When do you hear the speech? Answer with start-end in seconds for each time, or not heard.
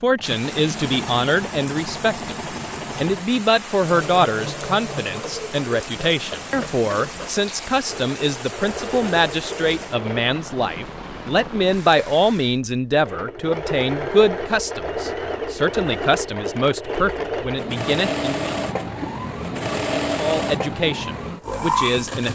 0.0-18.6, 20.1-22.2.